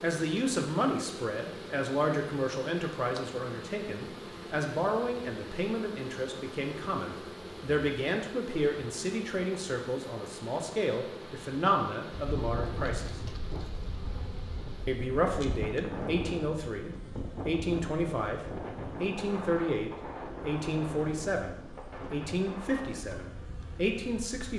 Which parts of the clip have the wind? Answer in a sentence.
The wind can be heard from 12.1 to 24.5 s.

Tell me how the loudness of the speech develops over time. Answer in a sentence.
The loudness of the speech stays about the same.